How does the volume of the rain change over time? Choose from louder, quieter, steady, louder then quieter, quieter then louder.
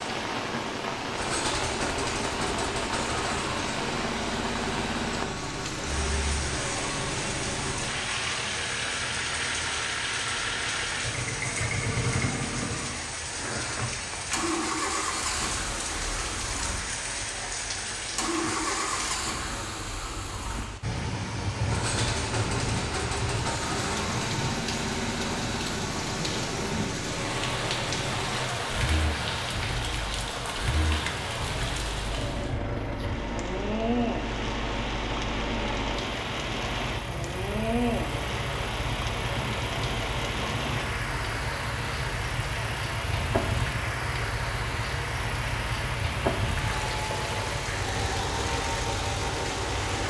steady.